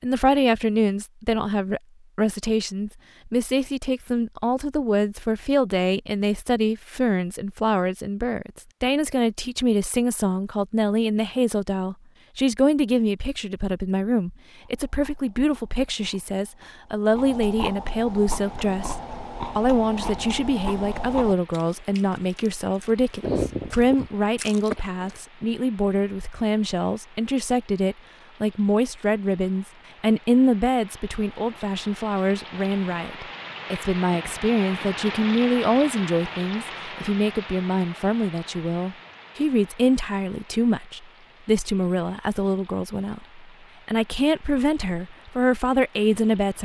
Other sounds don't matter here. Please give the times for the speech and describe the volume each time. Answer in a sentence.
The speech can be heard from 0.0 to 46.6 s, at a steady volume.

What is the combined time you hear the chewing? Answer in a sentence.
The chewing can be heard for 11 seconds in total.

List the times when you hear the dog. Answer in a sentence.
The dog can't be heard in this clip.